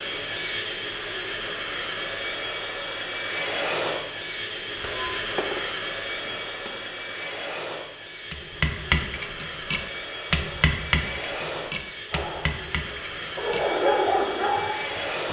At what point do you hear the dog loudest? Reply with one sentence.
The loudest moment of the dog is at 14 seconds.